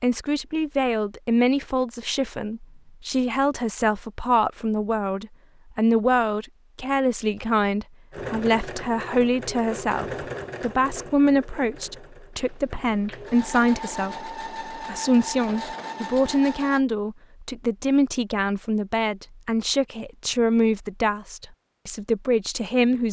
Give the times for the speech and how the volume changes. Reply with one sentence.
The speech can be heard from 0.0 to 23.0 s, at a steady volume.